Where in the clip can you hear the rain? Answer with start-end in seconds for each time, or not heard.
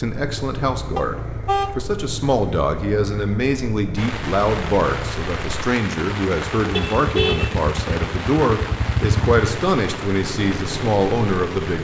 4.0-11.7.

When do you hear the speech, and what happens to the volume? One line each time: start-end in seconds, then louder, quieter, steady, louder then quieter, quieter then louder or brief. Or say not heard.
0.0-11.7 steady.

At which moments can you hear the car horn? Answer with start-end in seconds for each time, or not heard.
0.9-1.8, 6.8-7.5.